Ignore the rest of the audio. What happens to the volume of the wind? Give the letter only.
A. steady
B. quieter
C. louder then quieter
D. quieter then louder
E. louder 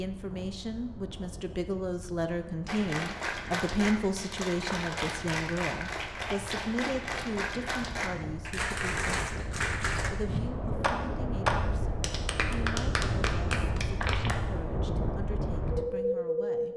E.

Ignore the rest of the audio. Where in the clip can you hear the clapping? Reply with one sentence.
The clapping can be heard from 2.6 to 14.3 s.